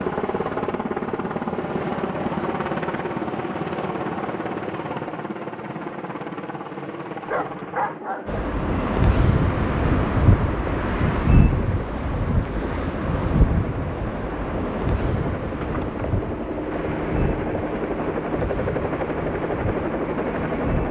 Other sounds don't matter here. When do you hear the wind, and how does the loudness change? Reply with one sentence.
The wind can be heard from 8.2 to 20.8 s, getting quieter.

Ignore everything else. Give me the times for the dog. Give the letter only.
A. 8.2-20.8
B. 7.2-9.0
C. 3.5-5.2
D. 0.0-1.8
B.